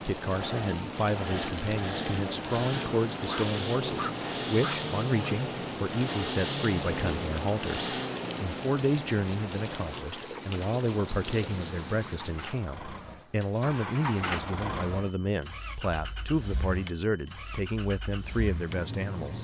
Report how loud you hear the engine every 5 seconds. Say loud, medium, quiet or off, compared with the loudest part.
loud, loud, loud, medium.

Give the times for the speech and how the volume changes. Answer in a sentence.
You can hear the speech from 0.1 to 19.3 s, at a steady volume.